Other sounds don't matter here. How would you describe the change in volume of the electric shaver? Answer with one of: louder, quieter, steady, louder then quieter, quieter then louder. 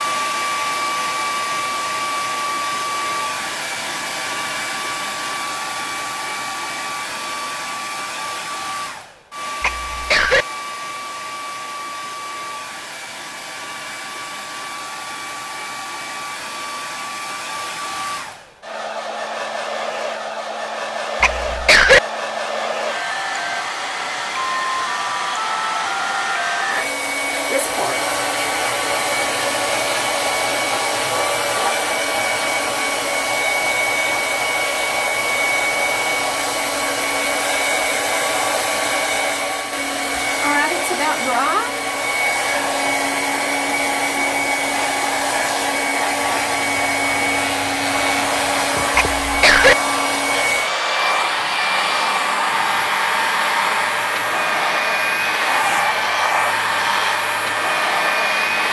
steady.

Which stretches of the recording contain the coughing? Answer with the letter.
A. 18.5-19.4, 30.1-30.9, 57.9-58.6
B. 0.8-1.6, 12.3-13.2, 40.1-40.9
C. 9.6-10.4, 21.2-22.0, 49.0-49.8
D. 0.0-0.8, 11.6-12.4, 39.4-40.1
C.